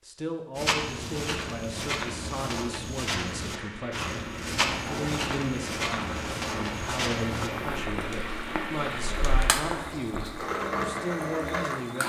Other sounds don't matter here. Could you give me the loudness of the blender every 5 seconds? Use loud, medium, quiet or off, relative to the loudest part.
medium, medium, loud.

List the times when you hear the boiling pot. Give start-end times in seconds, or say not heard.
4.5-12.0.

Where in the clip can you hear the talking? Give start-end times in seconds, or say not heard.
0.1-12.0.